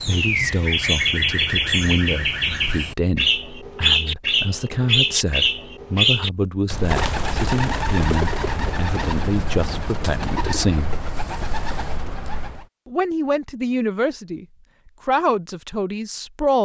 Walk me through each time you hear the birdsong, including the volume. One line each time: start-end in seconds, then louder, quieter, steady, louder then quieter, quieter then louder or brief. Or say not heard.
0.0-12.7 quieter.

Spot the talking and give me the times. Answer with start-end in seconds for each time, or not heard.
0.0-10.9, 12.8-14.4, 15.1-16.6.